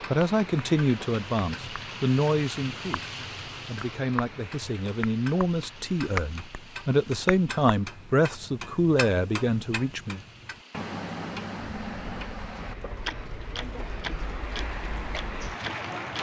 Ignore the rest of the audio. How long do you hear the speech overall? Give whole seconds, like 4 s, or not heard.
10 s.